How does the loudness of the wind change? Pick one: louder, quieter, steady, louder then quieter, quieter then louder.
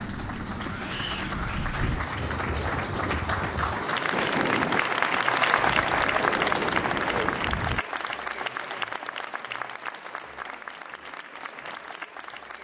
steady.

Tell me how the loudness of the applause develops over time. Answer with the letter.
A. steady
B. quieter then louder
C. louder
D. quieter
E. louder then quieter
E.